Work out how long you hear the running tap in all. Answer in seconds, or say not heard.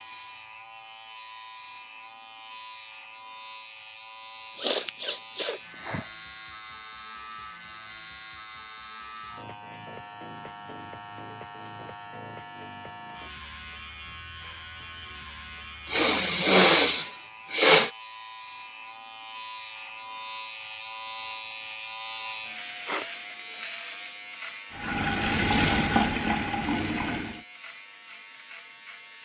3 s.